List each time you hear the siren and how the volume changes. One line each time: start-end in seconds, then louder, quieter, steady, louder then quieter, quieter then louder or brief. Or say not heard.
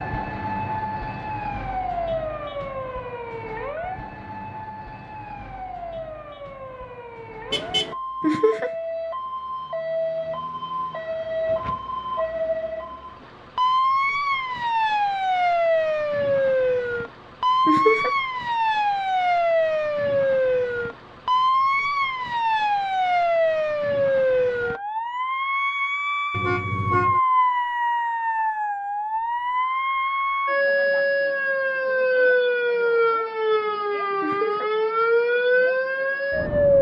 0.0-36.7 louder.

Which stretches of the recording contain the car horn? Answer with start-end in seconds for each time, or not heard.
7.5-8.0, 26.3-27.2.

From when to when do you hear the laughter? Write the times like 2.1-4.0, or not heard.
8.2-8.7, 17.6-18.1, 34.2-34.6.